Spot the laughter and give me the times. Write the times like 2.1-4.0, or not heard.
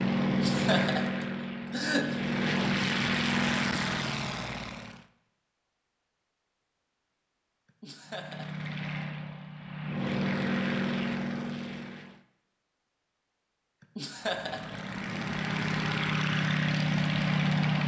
0.2-2.1, 7.7-8.7, 13.8-14.9.